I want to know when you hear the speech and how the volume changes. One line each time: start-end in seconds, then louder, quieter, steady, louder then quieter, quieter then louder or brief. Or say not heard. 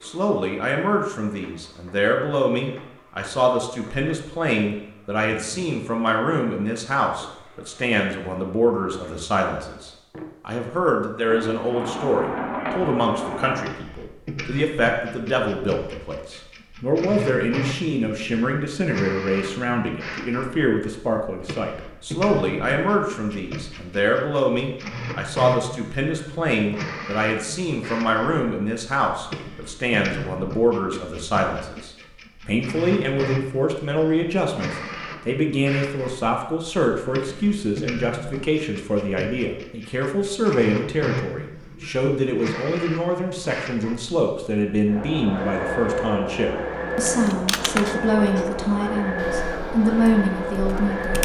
0.0-51.2 steady.